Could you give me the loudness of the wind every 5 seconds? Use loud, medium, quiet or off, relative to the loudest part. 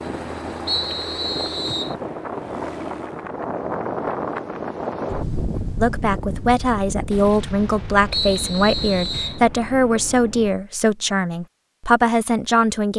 loud, loud, off.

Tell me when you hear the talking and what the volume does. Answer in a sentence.
The talking can be heard from 5.8 to 12.9 s, at a steady volume.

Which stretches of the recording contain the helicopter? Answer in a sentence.
You can hear the helicopter from 0.0 to 3.3 s.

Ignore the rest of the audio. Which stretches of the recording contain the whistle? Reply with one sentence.
The whistle can be heard from 0.7 to 1.9 s and from 8.1 to 9.4 s.